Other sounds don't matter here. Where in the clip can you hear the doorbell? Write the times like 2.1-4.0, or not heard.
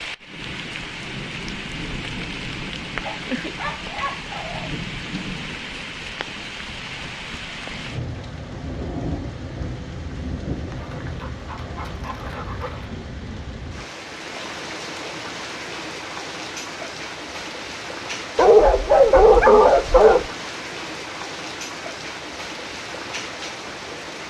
not heard.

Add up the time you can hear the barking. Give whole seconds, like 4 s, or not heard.
6 s.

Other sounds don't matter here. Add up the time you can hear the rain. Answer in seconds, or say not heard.
24 s.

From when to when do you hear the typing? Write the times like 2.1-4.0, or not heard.
not heard.